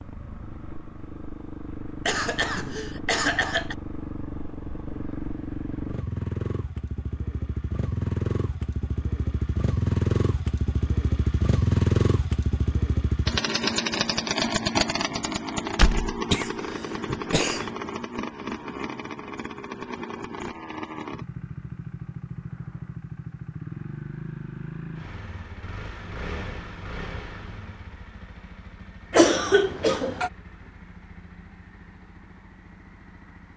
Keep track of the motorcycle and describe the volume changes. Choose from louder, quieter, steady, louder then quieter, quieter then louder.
louder then quieter.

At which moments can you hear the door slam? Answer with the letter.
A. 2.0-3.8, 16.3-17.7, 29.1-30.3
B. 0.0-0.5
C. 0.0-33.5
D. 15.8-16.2
D.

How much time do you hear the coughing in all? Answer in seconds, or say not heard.
4 s.